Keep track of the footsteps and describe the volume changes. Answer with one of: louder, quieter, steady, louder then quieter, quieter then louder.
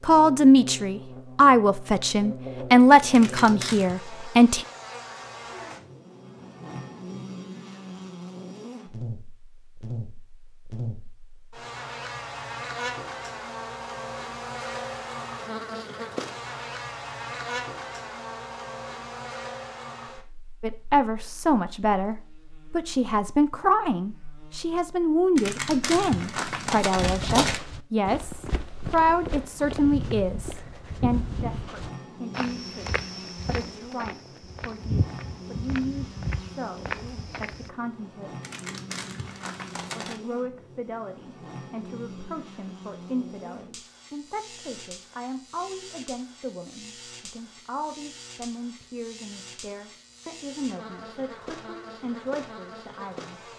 steady.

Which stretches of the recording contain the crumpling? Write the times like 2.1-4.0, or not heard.
3.1-4.0, 25.4-27.6, 38.4-40.2.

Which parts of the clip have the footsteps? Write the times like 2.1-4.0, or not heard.
26.9-37.7.